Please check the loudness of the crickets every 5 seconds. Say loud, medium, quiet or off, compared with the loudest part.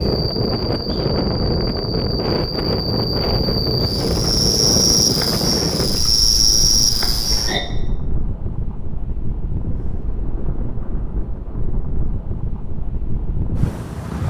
medium, loud, off.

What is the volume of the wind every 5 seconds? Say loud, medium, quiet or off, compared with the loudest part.
loud, medium, medium.